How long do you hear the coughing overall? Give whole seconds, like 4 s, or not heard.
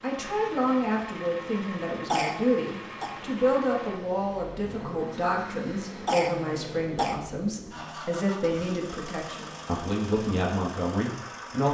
2 s.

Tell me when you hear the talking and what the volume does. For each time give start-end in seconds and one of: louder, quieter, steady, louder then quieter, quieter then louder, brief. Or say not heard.
0.0-11.7 steady.